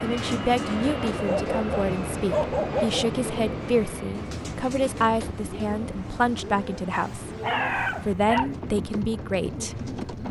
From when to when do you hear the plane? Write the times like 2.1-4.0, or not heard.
0.0-10.2.